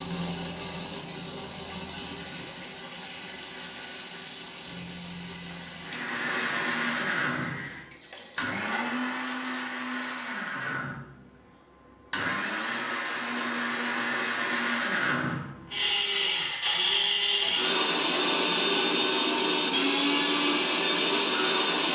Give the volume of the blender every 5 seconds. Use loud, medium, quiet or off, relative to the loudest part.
off, medium, medium, loud, loud.